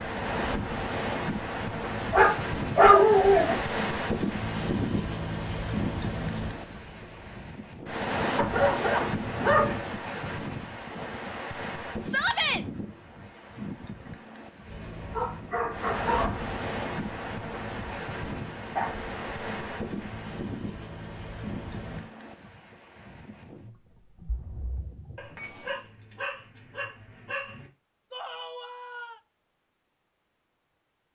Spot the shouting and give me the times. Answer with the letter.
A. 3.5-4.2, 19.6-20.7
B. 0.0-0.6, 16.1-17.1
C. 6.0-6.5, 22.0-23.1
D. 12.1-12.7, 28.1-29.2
D.